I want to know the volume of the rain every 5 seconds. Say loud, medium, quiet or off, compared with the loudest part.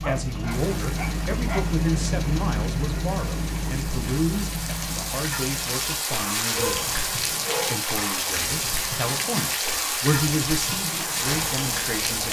medium, loud, loud.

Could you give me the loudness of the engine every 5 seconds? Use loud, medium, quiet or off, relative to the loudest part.
loud, medium, medium.